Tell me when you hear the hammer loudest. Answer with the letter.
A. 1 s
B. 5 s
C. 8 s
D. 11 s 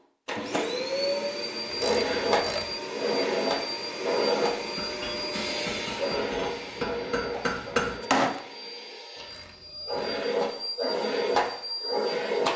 C.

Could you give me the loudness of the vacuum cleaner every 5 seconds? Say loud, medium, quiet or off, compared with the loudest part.
loud, medium, loud.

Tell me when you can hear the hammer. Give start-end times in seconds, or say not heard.
4.6-8.4.